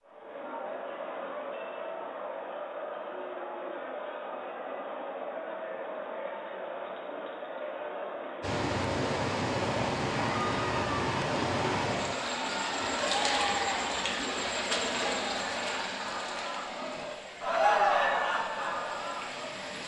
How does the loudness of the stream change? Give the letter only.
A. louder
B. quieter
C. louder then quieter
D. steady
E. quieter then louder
B.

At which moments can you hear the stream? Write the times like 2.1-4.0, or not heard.
8.4-19.8.